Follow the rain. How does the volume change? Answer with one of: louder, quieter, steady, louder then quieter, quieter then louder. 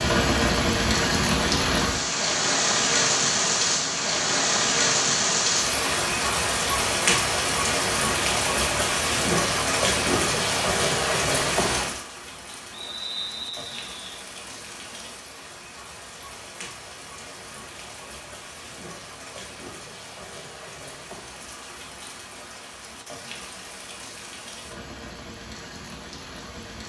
quieter.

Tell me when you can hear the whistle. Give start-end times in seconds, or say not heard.
12.7-14.2.